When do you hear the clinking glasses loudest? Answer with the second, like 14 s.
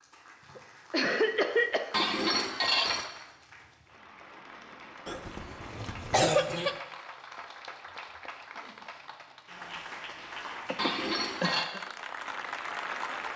3 s.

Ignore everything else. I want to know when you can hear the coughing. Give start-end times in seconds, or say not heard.
0.6-1.9, 5.0-6.8, 10.7-11.8.